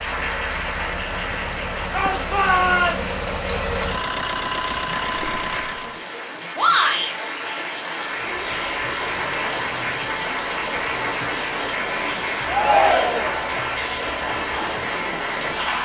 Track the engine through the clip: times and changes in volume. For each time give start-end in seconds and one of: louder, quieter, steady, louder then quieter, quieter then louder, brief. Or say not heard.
0.0-6.0 louder
8.1-15.8 steady.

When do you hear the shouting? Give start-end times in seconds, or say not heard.
1.9-3.0, 6.5-7.2, 12.4-13.4.